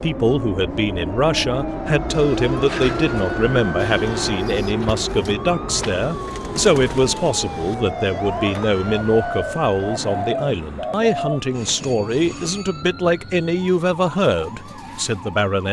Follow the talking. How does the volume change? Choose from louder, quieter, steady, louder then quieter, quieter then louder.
steady.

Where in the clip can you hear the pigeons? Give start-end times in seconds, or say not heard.
3.8-11.4.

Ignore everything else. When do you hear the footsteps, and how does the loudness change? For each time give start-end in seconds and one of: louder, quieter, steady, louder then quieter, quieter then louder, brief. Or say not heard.
not heard.